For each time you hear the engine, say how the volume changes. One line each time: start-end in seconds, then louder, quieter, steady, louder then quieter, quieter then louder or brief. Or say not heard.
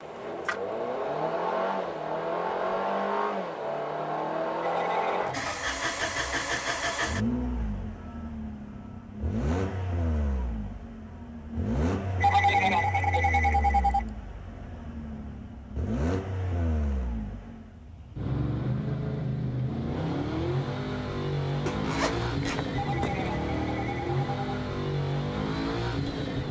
0.0-26.4 quieter then louder.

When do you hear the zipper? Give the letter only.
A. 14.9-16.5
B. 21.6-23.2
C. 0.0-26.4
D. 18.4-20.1
B.